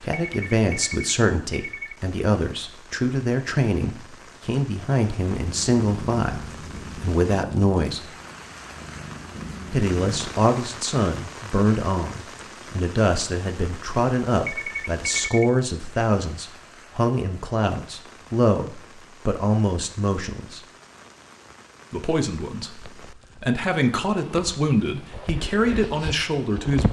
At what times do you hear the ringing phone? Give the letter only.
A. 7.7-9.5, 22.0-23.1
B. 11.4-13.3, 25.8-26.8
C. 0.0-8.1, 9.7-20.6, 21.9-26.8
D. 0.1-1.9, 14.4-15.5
D.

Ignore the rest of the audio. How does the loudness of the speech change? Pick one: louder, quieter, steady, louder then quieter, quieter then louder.
steady.